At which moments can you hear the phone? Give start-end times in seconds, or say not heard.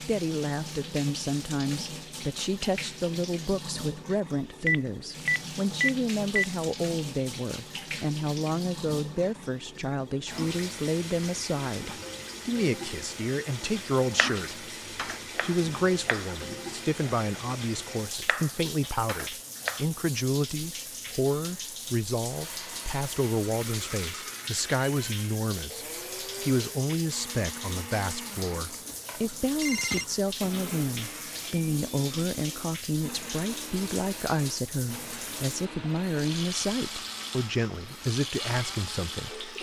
4.7-6.5, 29.6-30.1.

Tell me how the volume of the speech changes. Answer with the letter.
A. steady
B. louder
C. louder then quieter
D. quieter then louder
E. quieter
A.